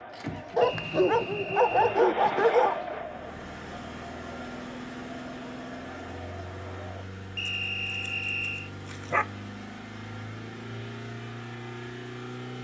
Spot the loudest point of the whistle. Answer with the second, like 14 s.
8 s.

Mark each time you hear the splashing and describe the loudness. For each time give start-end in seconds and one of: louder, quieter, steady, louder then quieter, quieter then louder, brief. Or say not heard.
not heard.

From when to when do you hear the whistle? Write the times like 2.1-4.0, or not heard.
0.6-2.0, 7.3-8.7.